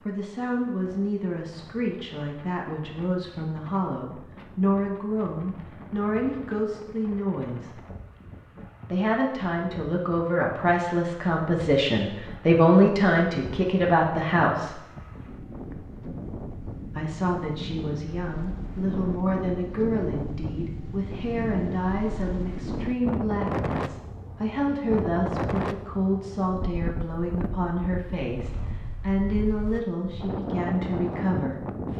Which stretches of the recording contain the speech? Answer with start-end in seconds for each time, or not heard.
0.1-7.7, 8.9-14.8, 16.9-31.9.